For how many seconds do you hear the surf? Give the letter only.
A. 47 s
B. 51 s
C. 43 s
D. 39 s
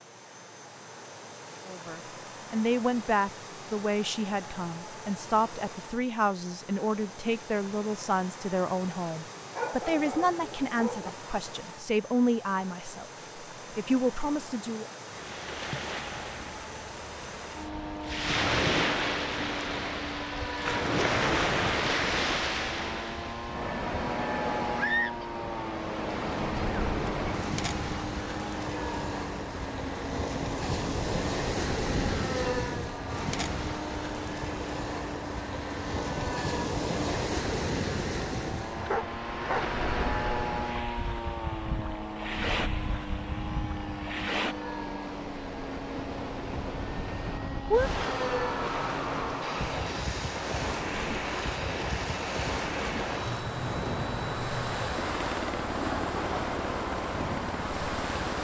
C.